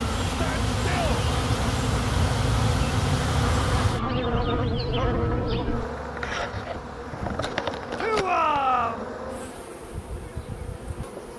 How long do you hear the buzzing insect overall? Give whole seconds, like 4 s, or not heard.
11 s.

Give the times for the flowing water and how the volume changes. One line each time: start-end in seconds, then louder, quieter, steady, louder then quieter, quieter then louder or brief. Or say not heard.
not heard.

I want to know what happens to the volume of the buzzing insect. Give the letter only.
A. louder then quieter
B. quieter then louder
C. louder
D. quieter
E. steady
D.